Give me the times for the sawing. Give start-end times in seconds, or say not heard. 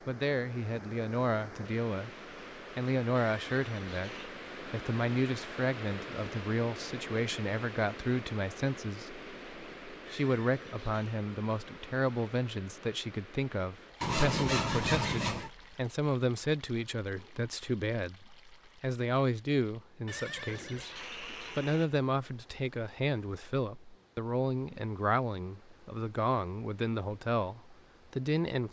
14.0-15.5.